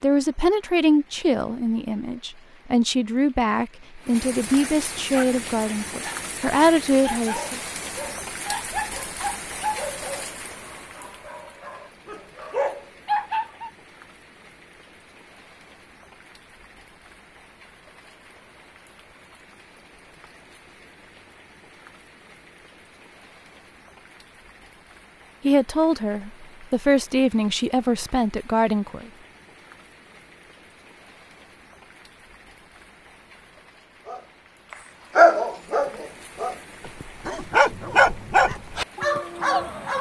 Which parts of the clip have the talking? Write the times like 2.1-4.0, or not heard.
0.0-7.6, 25.4-29.1.